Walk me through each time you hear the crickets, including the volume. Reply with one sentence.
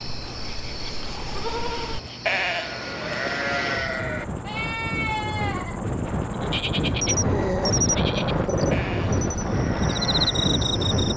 You can hear the crickets from 0.0 to 11.1 s, getting quieter then louder.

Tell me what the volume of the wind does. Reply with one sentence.
The loudness of the wind goes up.